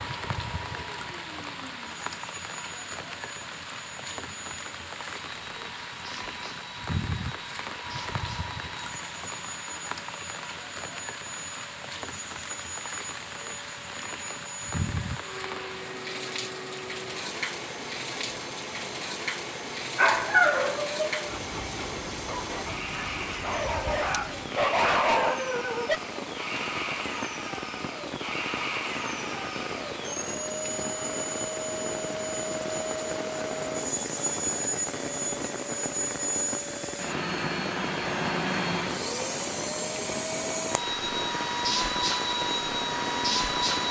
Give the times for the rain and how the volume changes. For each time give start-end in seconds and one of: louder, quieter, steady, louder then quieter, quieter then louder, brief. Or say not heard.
0.0-43.8 steady.